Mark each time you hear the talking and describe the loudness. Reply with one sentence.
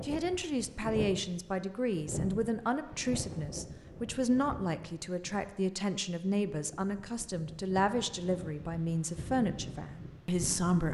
The talking can be heard from 0.0 to 10.8 s, at a steady volume.